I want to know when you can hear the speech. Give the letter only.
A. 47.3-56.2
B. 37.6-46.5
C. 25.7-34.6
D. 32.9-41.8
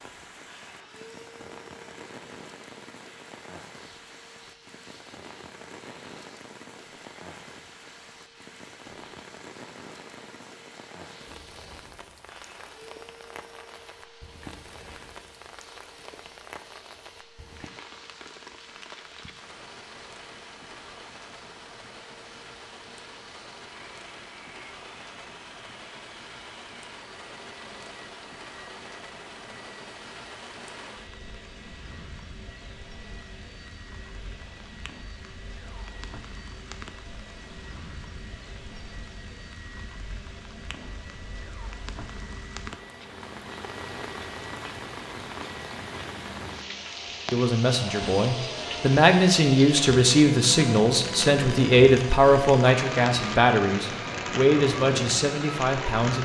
A.